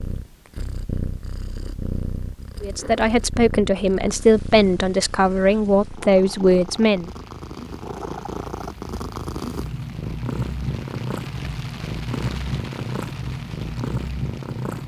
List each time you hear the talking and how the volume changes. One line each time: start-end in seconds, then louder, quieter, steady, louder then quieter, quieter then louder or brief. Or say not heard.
2.6-7.1 steady.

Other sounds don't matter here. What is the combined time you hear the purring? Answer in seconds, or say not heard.
15 s.